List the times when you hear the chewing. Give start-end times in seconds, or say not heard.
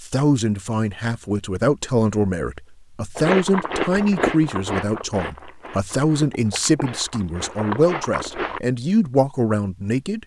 3.1-8.6.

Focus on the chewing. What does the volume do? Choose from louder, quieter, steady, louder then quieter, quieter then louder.
quieter then louder.